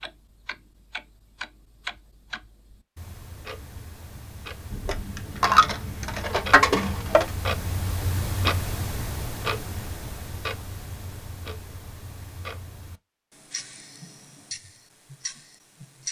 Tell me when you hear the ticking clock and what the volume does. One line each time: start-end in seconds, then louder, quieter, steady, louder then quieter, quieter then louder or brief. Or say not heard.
0.0-16.0 louder then quieter.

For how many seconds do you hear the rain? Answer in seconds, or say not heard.
not heard.